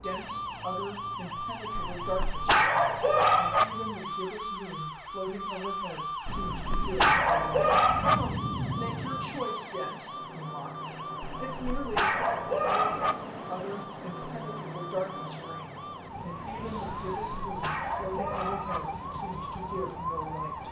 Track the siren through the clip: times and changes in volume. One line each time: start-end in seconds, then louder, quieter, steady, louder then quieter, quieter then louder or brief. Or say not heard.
0.0-20.6 quieter then louder.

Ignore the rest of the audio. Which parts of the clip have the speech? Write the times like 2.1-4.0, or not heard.
0.0-20.6.